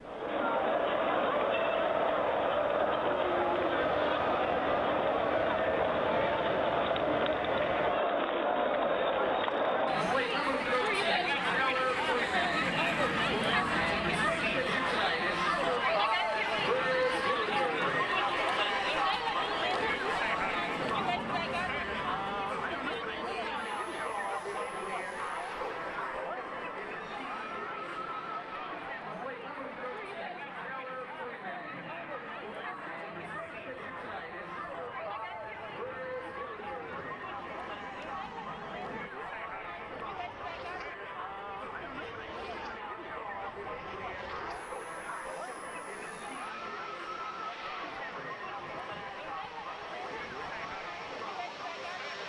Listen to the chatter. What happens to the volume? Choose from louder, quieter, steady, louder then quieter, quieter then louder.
quieter.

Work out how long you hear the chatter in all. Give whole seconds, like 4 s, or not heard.
52 s.